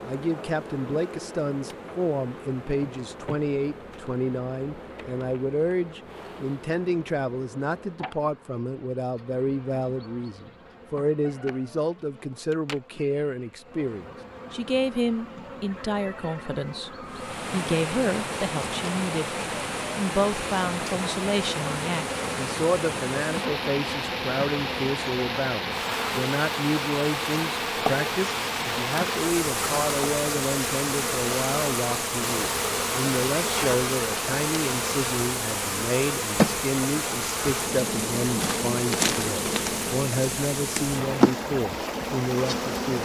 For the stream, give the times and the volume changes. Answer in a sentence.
You can hear the stream from 17.1 to 43.0 s, at a steady volume.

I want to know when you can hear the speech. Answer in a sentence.
The speech can be heard from 0.0 to 19.4 s and from 19.9 to 43.0 s.